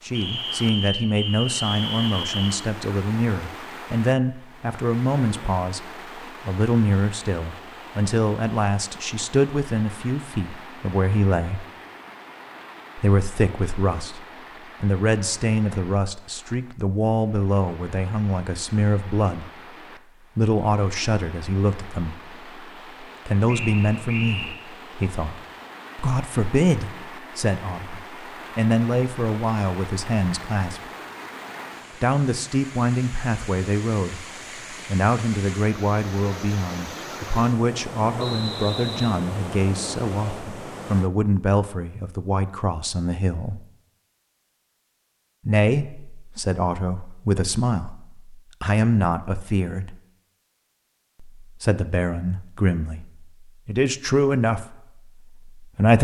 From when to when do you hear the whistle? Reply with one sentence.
The whistle can be heard from 0.1 to 2.5 s, from 23.4 to 24.6 s and from 38.1 to 39.1 s.